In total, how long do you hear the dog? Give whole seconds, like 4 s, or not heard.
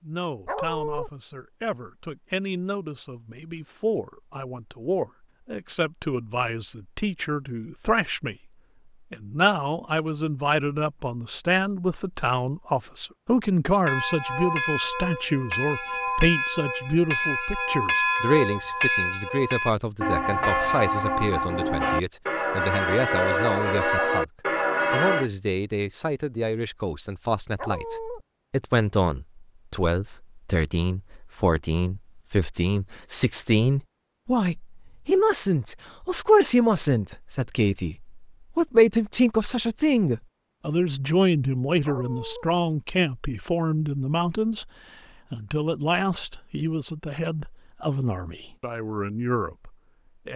2 s.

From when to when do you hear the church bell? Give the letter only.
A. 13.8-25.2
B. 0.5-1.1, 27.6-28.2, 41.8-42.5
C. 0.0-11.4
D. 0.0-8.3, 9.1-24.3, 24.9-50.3
A.